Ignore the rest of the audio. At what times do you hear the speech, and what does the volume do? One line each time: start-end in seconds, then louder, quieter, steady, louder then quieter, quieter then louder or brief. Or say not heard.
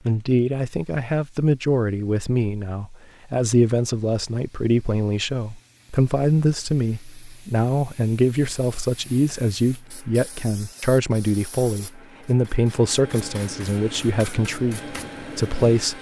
0.1-15.9 steady.